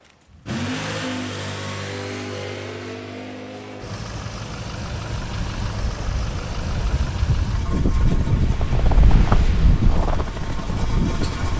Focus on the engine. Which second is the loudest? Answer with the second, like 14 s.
1 s.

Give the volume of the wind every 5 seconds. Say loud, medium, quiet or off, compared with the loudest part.
off, loud, loud.